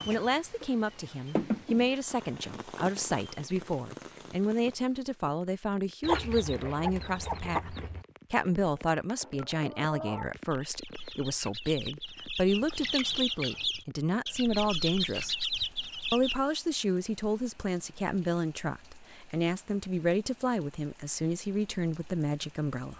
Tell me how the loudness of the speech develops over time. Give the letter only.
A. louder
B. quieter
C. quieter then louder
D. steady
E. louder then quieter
D.